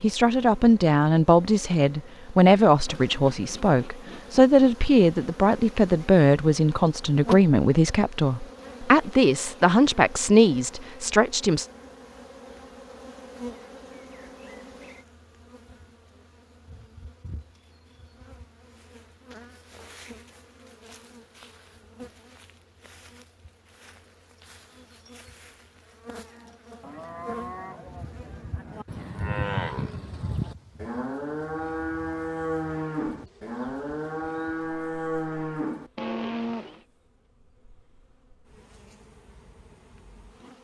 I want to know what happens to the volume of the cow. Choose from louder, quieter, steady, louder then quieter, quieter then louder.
louder.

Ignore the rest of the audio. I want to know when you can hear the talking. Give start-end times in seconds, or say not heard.
0.0-11.7.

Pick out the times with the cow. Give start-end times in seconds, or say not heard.
26.2-36.8.